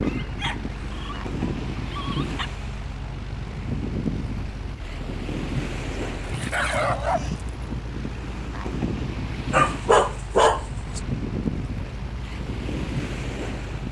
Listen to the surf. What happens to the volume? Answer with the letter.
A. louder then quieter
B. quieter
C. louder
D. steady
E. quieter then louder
D.